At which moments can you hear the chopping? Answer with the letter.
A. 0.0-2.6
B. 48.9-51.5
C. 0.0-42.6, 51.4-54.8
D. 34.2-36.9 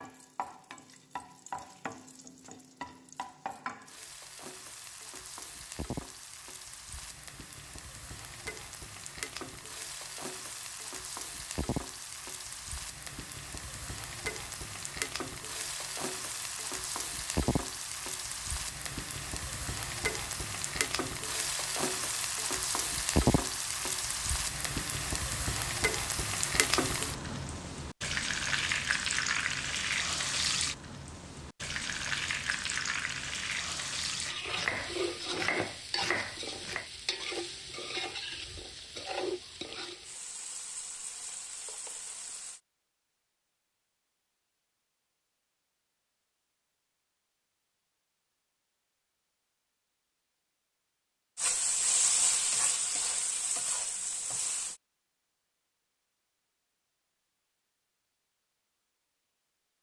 D.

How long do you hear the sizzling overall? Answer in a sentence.
The sizzling can be heard for 46 seconds in total.